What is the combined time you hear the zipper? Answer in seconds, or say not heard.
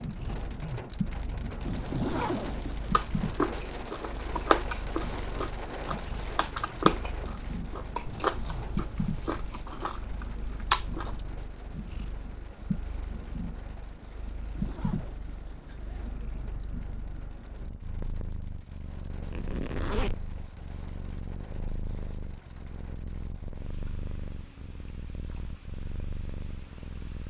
4 s.